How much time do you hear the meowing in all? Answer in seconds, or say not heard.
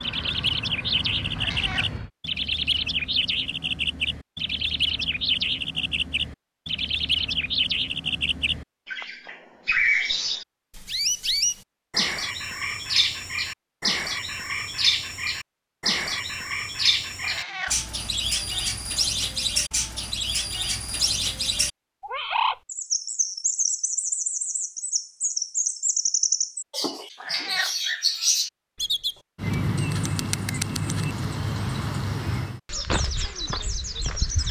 2 s.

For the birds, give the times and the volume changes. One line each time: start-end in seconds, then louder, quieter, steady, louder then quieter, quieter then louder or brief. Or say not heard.
0.0-34.4 steady.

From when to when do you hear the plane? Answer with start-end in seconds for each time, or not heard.
0.0-2.1.